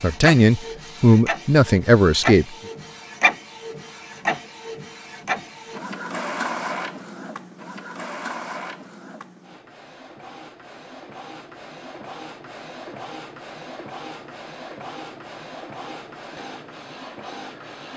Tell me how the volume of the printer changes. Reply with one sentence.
The volume of the printer goes down.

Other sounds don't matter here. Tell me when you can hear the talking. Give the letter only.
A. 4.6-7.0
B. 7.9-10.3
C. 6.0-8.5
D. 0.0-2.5
D.